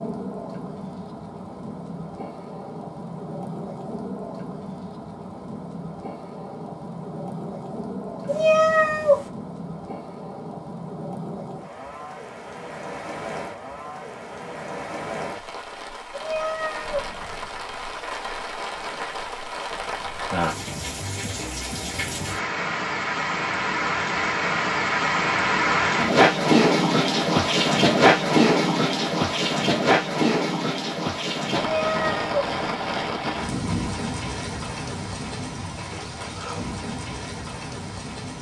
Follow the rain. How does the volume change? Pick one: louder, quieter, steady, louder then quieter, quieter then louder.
louder then quieter.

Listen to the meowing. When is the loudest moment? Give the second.
9 s.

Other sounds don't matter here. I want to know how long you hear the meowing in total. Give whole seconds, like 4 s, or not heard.
3 s.